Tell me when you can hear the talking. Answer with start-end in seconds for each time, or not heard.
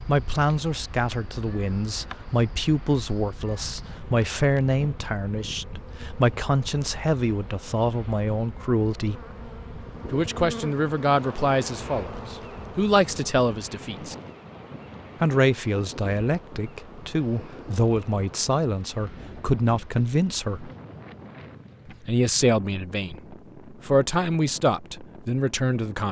0.1-9.2, 10.1-14.2, 15.2-20.7, 21.9-26.0.